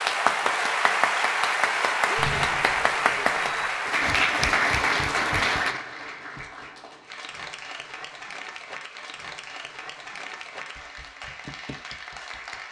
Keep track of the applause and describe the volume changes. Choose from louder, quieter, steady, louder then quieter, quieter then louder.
quieter.